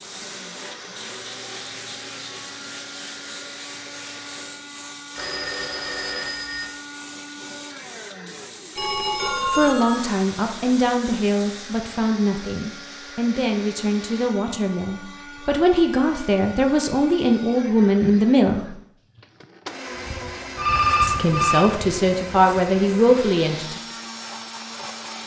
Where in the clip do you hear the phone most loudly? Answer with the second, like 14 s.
21 s.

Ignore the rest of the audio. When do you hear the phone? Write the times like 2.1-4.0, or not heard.
5.1-6.7, 8.8-10.1, 20.6-21.8.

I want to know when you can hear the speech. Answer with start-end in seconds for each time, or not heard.
9.4-18.8, 21.1-23.8.